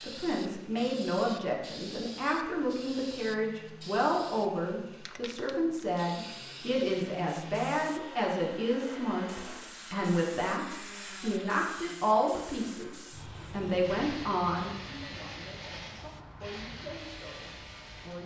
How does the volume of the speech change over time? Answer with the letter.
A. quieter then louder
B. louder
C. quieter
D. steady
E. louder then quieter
C.